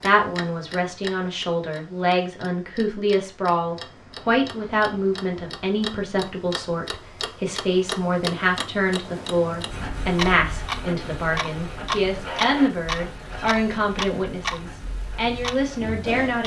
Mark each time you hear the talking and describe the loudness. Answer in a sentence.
The talking can be heard from 0.0 to 16.4 s, at a steady volume.